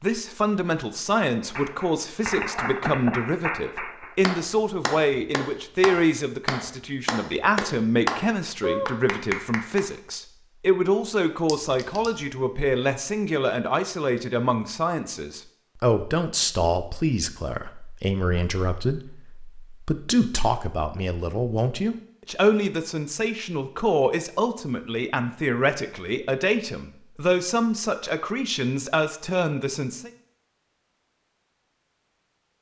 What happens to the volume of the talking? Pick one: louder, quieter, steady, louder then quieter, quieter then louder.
steady.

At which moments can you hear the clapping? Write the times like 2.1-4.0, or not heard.
1.6-9.8.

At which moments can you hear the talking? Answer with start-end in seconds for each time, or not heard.
0.0-30.1.